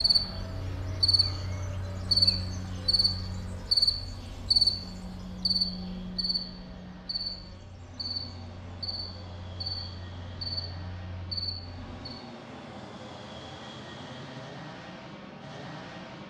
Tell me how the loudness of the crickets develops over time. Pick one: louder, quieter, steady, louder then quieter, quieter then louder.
quieter.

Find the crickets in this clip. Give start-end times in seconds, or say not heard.
0.0-12.0.